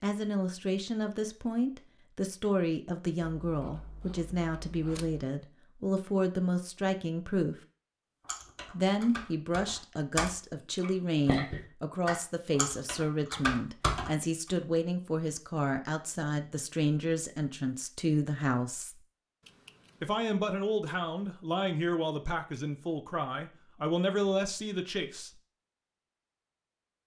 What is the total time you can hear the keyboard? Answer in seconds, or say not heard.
6 s.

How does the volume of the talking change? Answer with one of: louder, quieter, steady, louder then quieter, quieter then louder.
steady.